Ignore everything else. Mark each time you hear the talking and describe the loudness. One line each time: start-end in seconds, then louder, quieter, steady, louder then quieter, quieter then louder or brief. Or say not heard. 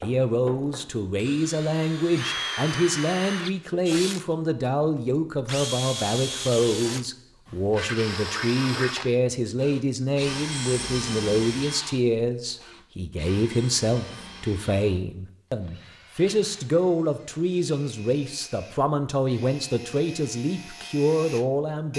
0.0-21.9 steady.